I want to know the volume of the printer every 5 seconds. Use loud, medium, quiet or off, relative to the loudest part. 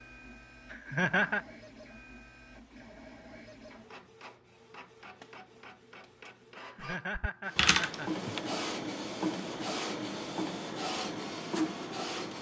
quiet, loud, loud.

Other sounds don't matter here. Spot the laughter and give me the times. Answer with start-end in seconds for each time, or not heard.
0.7-1.4, 6.6-8.3.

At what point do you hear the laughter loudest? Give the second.
1 s.